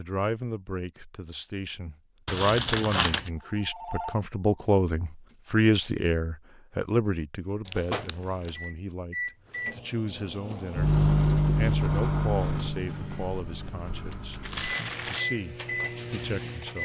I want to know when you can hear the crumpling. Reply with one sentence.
The crumpling can be heard from 2.2 to 3.3 s, from 7.7 to 8.6 s and from 14.4 to 15.2 s.